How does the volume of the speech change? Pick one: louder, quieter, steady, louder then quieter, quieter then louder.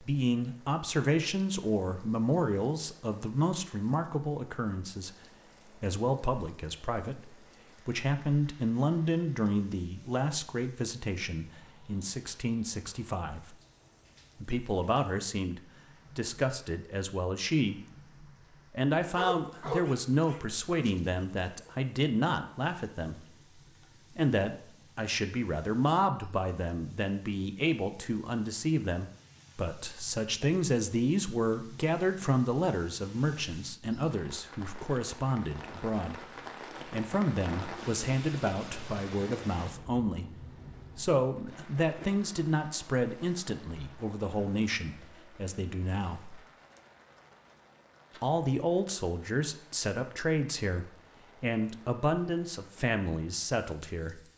steady.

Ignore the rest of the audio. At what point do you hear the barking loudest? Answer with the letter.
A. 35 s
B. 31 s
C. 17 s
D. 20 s
D.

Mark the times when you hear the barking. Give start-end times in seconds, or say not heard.
19.1-21.7.